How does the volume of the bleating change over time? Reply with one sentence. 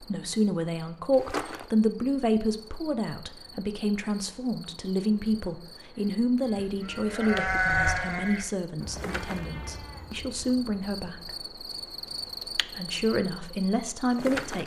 The loudness of the bleating goes up, then down.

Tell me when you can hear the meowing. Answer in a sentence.
The meowing can't be heard in this clip.